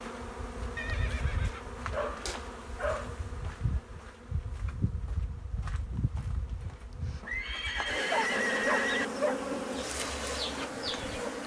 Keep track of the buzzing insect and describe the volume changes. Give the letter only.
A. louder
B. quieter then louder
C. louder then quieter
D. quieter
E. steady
A.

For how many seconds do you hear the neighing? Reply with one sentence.
You can hear the neighing for 3 seconds altogether.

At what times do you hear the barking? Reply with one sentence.
You can hear the barking from 1.4 to 3.2 s and from 8.1 to 9.3 s.